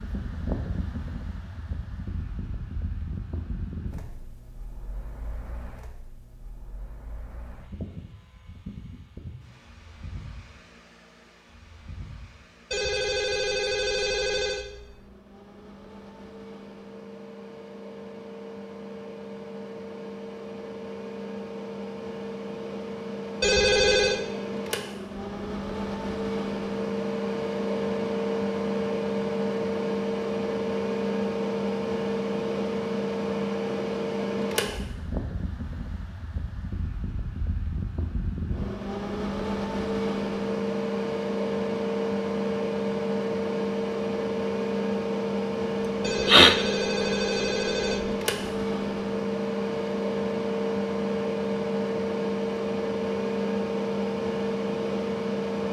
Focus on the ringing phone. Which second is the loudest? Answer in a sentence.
The volume of the ringing phone peaks at 24 seconds.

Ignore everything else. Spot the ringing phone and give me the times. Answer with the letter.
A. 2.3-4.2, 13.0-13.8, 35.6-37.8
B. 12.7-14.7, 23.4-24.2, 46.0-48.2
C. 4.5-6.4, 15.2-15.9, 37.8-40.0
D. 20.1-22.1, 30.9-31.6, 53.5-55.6
B.